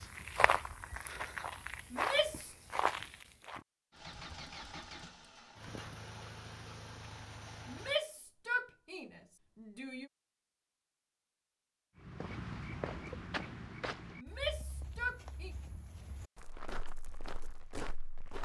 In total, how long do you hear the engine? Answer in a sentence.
The engine can be heard for 4 seconds in total.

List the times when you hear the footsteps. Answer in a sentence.
The footsteps can be heard from 0.0 to 3.6 s and from 12.0 to 18.3 s.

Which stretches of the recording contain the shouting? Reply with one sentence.
The shouting can be heard from 1.9 to 2.5 s, from 7.7 to 10.1 s and from 14.2 to 15.6 s.